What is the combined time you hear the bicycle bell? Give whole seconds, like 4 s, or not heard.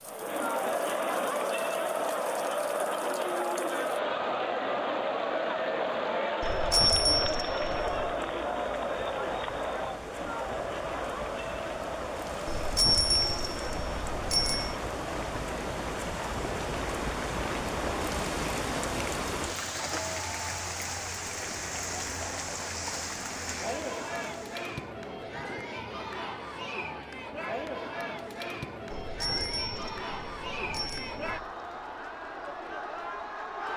7 s.